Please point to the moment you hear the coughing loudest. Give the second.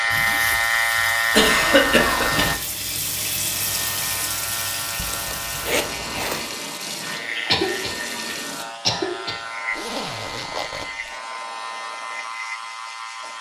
2 s.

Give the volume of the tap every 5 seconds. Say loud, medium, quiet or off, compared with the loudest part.
loud, loud, off.